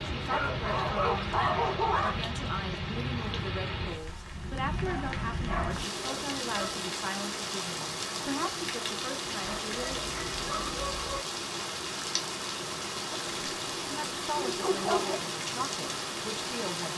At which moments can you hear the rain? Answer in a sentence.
You can hear the rain from 0.0 to 16.9 s.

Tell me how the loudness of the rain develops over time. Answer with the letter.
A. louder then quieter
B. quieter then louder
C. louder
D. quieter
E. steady
E.